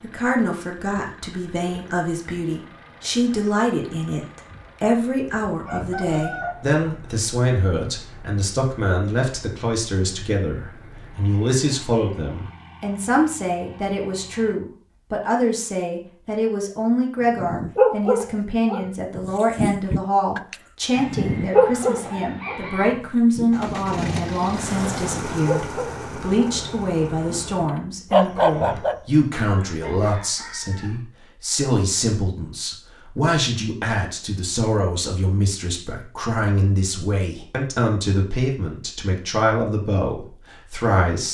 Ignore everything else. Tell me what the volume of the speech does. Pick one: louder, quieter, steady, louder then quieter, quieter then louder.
steady.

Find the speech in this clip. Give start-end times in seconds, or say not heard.
0.0-41.2.